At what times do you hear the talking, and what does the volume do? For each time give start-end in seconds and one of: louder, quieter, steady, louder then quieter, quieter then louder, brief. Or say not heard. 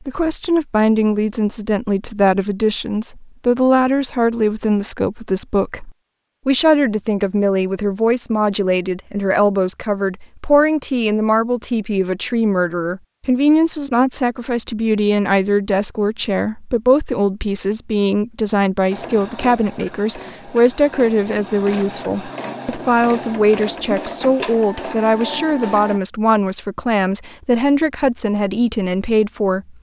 0.1-29.7 steady.